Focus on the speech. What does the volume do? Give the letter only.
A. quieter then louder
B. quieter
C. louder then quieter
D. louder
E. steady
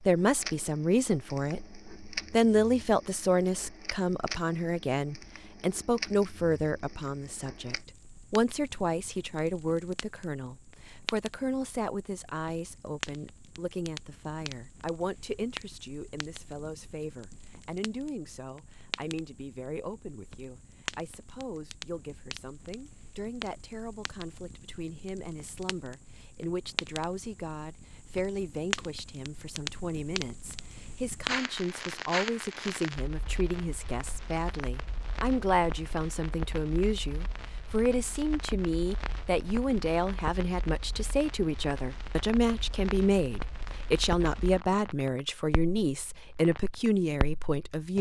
A.